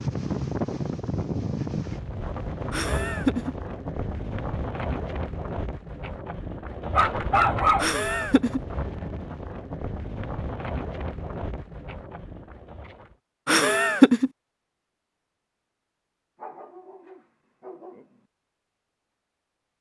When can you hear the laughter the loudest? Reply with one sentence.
The loudest moment of the laughter is at 14 seconds.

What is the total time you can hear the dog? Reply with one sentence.
The dog can be heard for 3 seconds in total.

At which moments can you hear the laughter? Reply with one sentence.
You can hear the laughter from 2.7 to 3.5 s, from 7.8 to 8.6 s and from 13.4 to 14.3 s.